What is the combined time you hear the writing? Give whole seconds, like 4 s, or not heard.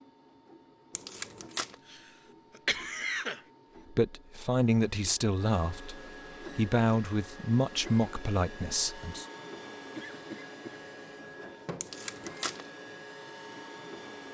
not heard.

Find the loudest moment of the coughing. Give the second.
3 s.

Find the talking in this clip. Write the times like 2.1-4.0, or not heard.
3.9-9.2.